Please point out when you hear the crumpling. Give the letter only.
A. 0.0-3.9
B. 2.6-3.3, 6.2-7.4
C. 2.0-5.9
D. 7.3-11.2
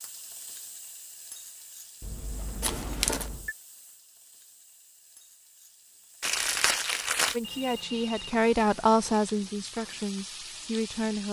B.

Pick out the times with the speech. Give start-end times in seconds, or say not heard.
7.3-11.2.